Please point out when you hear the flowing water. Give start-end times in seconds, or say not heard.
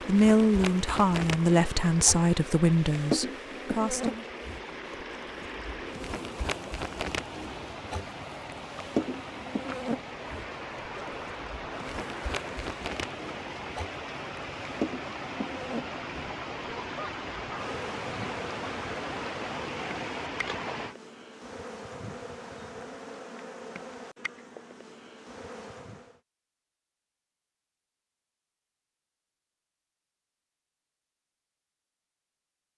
0.0-20.9.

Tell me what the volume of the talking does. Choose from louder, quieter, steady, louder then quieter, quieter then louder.
quieter.